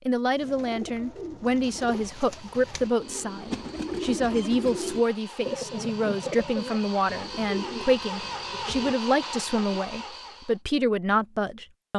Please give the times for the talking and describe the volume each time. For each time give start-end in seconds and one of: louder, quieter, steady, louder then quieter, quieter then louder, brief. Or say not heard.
0.1-11.9 steady.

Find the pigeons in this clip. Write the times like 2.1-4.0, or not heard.
0.3-9.7.